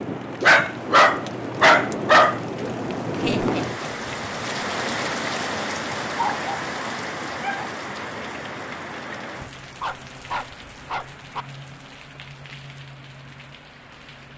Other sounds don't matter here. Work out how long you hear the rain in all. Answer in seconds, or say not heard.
14 s.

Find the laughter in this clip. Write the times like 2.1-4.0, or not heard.
3.2-4.4.